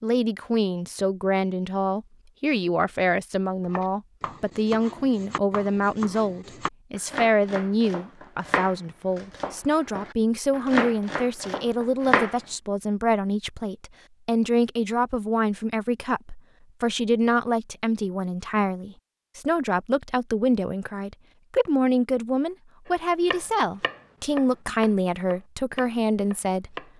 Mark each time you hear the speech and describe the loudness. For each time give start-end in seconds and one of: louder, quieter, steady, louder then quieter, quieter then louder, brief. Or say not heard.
0.0-26.8 steady.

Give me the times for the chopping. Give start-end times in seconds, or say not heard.
3.6-12.3, 22.9-26.9.